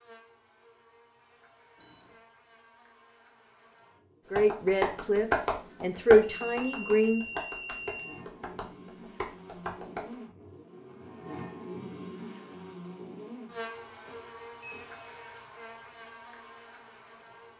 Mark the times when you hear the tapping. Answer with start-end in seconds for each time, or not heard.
4.3-10.2.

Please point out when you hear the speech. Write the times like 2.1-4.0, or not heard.
4.3-7.4.